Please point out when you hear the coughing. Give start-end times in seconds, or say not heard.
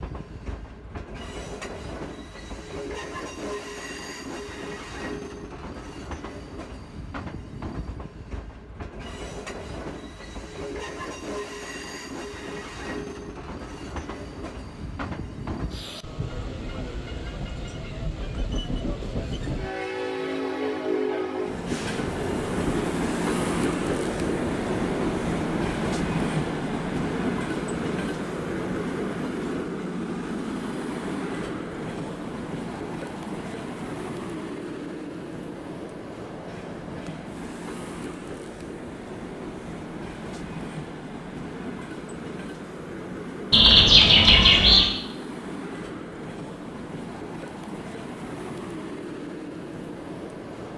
not heard.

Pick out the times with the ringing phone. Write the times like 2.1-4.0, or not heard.
43.5-44.9.